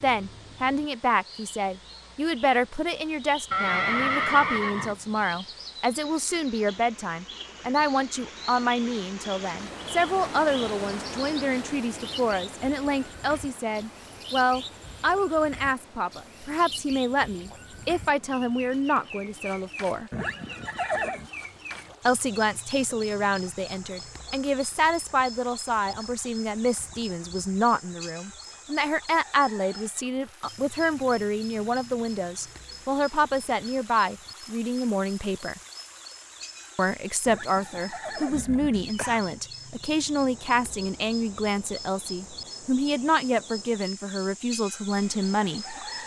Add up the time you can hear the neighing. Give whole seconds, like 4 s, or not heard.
5 s.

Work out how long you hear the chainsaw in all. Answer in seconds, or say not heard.
not heard.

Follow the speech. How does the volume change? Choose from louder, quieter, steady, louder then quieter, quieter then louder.
steady.